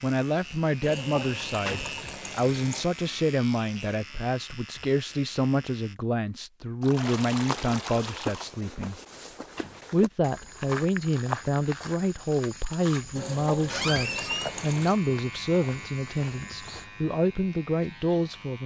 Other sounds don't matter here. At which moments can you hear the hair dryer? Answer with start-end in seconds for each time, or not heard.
not heard.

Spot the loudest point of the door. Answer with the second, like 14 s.
14 s.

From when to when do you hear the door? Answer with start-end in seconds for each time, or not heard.
1.2-1.9, 9.1-9.8, 13.7-14.6.